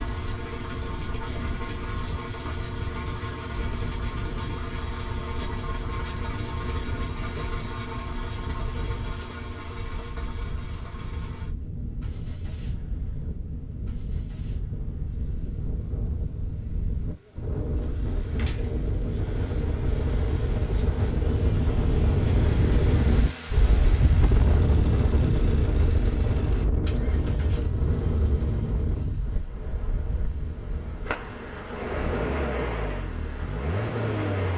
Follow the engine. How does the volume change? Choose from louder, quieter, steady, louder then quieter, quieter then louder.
quieter then louder.